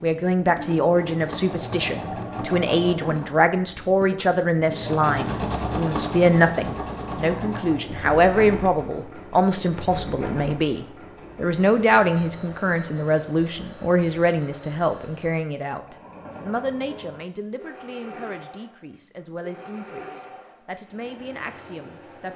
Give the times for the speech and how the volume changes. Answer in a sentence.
You can hear the speech from 0.0 to 22.3 s, getting quieter.